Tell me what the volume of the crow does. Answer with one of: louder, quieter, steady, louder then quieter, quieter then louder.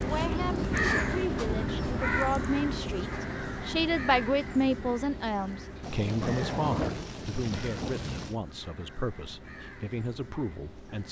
quieter.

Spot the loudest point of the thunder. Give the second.
7 s.